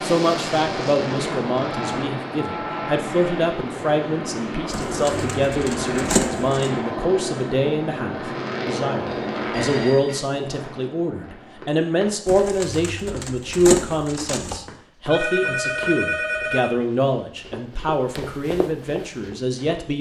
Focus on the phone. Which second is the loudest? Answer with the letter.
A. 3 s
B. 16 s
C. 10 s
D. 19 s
B.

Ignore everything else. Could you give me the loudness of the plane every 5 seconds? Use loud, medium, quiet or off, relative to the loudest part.
loud, loud, quiet, off.